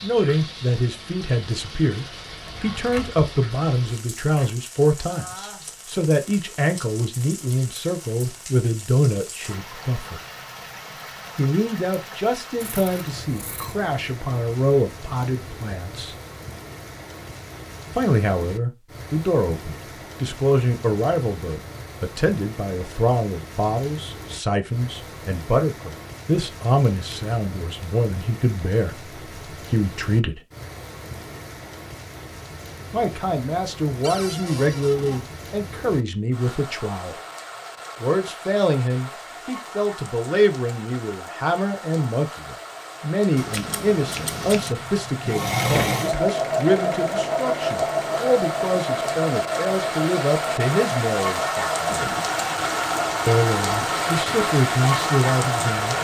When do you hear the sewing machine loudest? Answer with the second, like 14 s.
46 s.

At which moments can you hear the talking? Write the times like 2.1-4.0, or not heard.
0.0-10.2, 11.3-16.1, 17.9-30.4, 32.9-37.1, 38.0-52.1, 53.2-55.9.